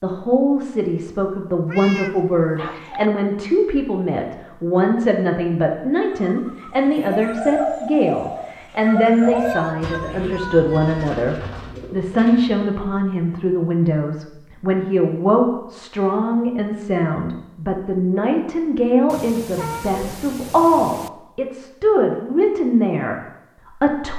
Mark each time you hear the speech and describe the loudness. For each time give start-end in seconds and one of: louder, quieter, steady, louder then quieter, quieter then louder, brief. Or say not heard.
0.0-24.1 steady.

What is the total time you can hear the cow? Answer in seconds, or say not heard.
not heard.